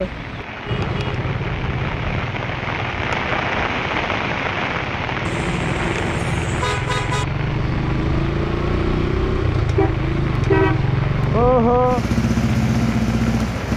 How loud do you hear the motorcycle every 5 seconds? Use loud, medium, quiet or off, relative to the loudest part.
medium, medium, loud.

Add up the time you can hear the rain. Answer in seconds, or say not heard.
14 s.